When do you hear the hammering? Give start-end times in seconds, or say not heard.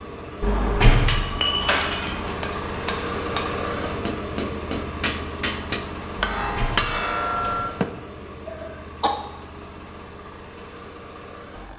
0.5-7.9.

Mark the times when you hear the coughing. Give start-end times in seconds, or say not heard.
8.4-9.1.